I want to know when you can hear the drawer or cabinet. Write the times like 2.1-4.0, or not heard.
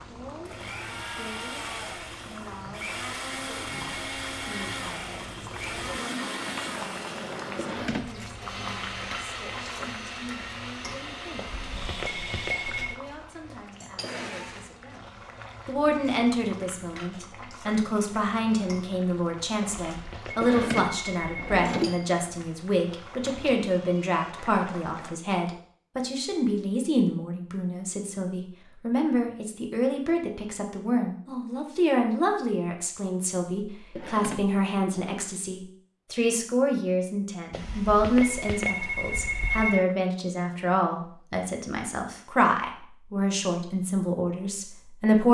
7.5-8.2, 20.4-22.0, 34.0-35.2.